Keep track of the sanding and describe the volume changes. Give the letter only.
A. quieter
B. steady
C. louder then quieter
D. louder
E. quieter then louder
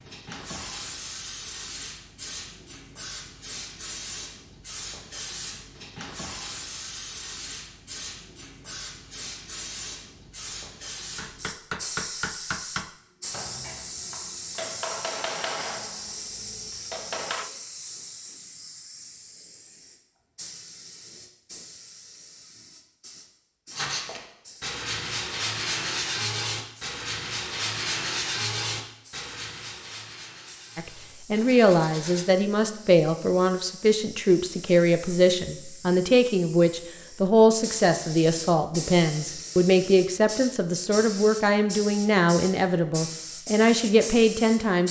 A.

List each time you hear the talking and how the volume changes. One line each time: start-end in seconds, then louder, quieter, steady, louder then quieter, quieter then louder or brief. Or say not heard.
30.8-44.8 steady.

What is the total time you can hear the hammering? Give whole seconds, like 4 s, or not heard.
6 s.